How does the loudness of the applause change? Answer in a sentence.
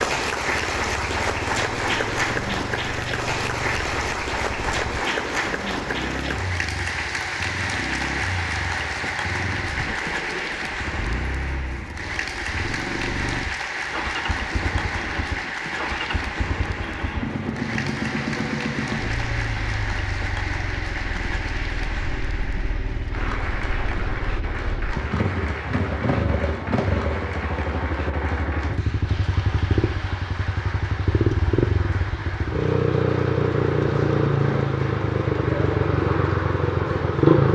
The volume of the applause goes down.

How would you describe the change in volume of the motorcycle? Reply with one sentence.
The loudness of the motorcycle goes up.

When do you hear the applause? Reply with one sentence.
The applause can be heard from 0.0 to 37.5 s.